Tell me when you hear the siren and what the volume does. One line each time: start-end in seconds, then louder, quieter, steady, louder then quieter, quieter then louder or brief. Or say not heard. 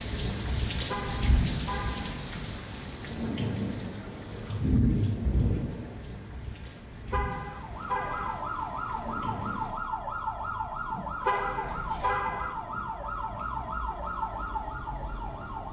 7.5-15.6 steady.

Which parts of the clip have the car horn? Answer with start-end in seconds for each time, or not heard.
0.8-2.2, 7.1-8.4, 11.2-12.6.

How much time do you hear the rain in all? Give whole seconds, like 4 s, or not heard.
10 s.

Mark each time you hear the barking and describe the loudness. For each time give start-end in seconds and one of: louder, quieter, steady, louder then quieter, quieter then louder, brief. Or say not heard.
not heard.